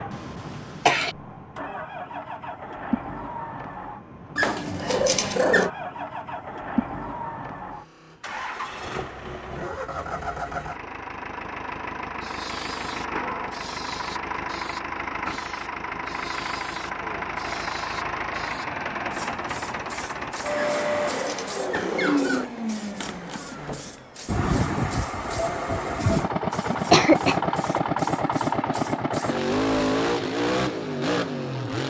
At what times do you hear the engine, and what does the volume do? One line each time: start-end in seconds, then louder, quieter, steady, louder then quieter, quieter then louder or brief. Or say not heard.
0.0-31.8 louder.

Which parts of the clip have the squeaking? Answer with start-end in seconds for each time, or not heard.
4.3-5.7, 20.7-22.4.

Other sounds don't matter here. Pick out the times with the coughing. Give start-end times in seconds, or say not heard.
0.1-1.1, 26.7-27.8.